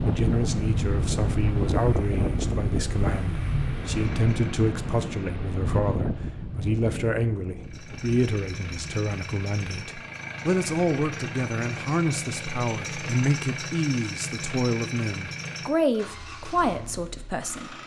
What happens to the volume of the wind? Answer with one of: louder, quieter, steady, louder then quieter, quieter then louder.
quieter.